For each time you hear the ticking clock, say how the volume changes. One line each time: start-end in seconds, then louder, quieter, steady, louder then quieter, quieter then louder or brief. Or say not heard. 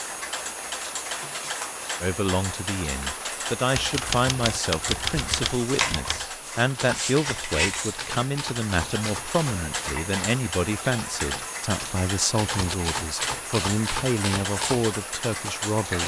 0.0-16.0 steady.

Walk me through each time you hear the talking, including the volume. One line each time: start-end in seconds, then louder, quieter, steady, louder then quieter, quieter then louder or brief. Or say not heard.
2.0-16.0 steady.